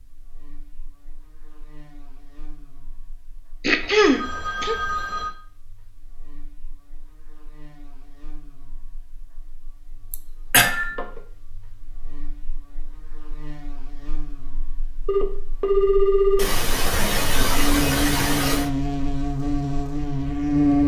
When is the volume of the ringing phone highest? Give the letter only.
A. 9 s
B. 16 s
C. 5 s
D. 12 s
B.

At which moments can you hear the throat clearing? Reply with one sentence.
You can hear the throat clearing from 3.6 to 4.8 s, from 10.1 to 10.7 s and from 16.4 to 18.7 s.